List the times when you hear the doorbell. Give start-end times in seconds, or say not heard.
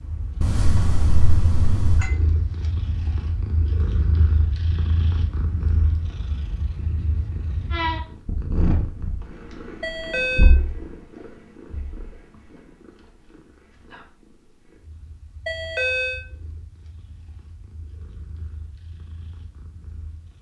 0.4-2.1, 9.8-10.6, 15.4-16.2.